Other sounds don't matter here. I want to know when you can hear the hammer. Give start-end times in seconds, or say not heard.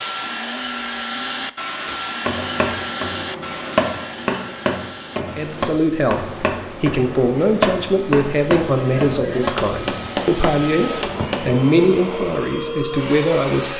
1.9-11.6.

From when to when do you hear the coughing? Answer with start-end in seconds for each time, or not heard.
8.8-9.5.